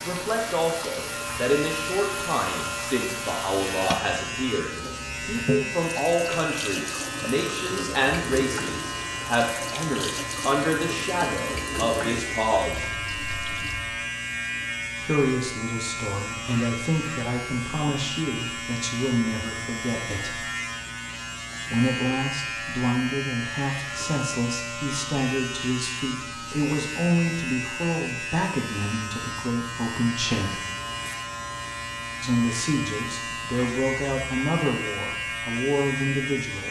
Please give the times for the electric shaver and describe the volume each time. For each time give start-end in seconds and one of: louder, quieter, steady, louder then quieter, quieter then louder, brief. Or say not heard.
0.0-36.6 steady.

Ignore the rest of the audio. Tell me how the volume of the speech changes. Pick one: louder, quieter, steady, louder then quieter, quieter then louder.
steady.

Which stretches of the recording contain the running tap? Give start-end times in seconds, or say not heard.
0.0-14.0.